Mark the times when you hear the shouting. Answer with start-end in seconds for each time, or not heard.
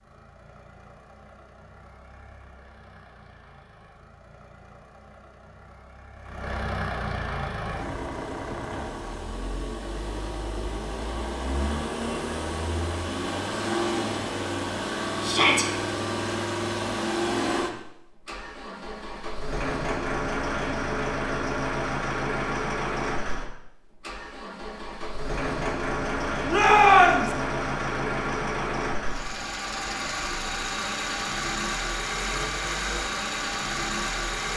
15.2-15.7, 26.4-27.4.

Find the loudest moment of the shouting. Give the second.
27 s.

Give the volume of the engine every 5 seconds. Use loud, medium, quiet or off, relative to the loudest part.
quiet, medium, loud, loud, loud, loud, loud.